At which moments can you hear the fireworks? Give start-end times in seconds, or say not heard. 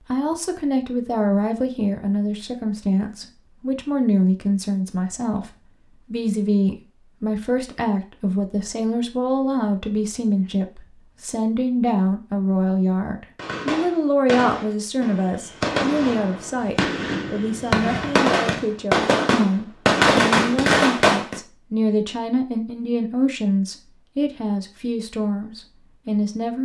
13.3-21.4.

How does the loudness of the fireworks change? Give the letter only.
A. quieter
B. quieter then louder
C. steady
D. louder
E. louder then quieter
D.